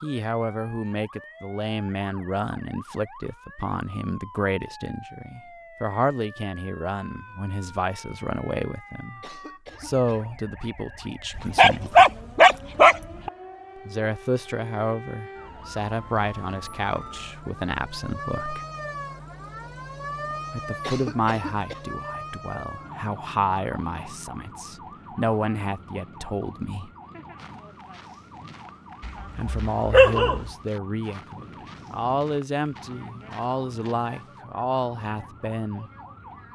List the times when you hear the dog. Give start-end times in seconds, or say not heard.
11.3-13.3, 29.1-30.5.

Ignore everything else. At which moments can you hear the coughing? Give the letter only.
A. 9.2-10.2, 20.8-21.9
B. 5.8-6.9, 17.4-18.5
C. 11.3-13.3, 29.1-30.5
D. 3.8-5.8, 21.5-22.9
A.